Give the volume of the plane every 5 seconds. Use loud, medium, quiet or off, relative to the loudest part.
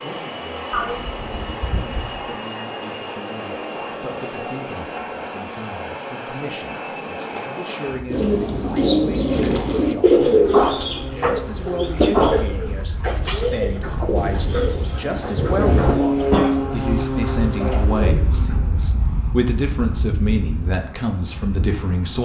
medium, medium, medium, loud, medium.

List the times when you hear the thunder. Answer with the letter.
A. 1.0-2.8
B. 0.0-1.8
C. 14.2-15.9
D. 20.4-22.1
C.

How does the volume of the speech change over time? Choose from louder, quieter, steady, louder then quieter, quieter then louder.
louder.